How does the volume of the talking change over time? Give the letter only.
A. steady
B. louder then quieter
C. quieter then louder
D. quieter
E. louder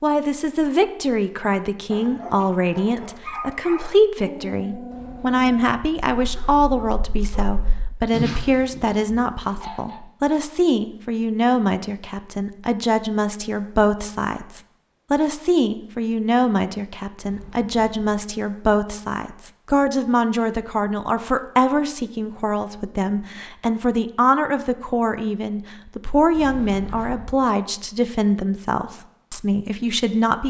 A.